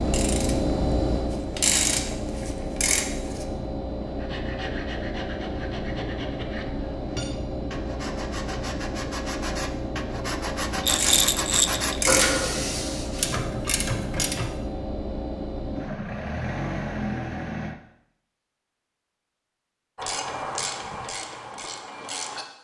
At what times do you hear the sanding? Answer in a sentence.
You can hear the sanding from 4.0 to 13.4 s.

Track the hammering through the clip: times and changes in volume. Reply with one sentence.
You can't hear the hammering here.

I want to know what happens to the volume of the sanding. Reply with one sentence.
The volume of the sanding goes up.